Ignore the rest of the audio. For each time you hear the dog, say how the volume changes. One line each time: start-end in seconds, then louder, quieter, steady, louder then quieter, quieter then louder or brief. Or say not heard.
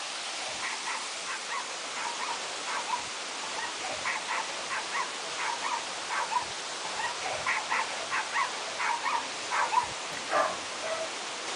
0.3-11.1 louder.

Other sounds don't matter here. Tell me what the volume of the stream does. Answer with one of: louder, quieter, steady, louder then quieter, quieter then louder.
steady.